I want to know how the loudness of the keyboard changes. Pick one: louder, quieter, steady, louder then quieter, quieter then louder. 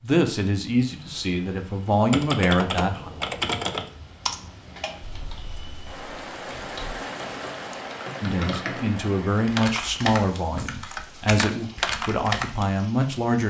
quieter then louder.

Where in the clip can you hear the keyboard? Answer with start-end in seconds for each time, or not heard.
1.9-12.7.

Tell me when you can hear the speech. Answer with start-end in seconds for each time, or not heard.
0.0-3.1, 8.2-13.4.